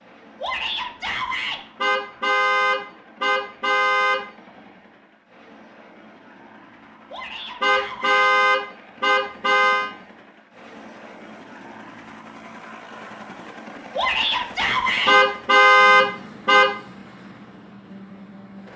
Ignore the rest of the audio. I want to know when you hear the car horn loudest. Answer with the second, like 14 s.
16 s.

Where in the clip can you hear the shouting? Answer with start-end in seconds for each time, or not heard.
0.4-1.6, 7.1-8.2, 13.9-15.2.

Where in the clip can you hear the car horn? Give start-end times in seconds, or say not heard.
1.8-4.2, 7.6-9.9, 15.1-16.7.